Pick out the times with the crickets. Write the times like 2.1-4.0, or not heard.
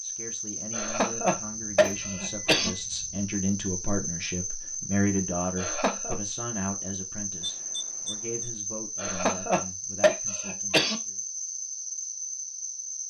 0.0-13.0.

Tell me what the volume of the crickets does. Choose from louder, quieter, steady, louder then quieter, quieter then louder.
steady.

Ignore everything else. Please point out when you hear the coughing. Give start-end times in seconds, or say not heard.
0.7-2.7, 5.5-6.2, 8.9-10.9.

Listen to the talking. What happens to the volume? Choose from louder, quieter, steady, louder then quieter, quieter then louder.
louder then quieter.